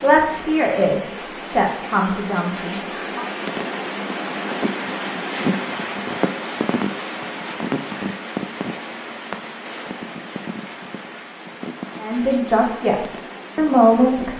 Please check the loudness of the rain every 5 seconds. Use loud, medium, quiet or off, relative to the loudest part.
loud, loud, medium.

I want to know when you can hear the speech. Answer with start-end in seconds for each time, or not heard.
0.0-3.2, 12.0-14.3.